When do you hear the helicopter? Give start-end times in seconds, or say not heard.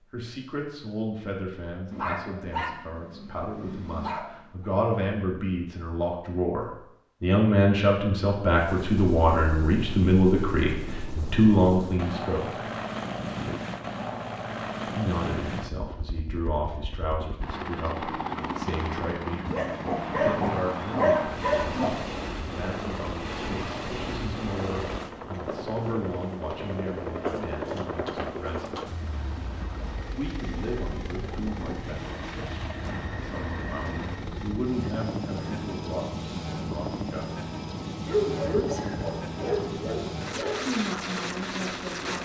8.4-42.1.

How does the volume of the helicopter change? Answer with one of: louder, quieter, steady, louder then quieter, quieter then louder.
steady.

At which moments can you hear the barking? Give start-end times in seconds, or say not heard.
1.9-4.7, 19.4-22.1, 38.0-40.6.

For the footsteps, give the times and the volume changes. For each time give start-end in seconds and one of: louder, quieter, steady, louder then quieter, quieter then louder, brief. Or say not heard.
not heard.